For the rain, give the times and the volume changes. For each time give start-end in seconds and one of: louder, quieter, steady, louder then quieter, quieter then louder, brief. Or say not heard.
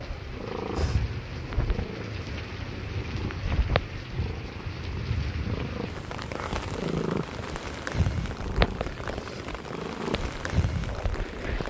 0.0-11.6 steady.